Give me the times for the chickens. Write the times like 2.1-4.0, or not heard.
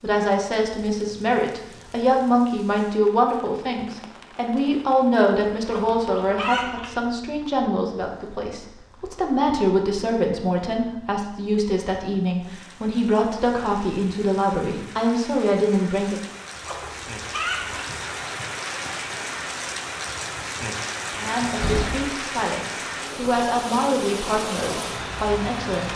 5.7-7.0, 16.6-17.9.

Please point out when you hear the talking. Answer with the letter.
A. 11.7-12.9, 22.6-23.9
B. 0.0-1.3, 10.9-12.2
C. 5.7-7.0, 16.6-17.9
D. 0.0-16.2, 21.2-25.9
D.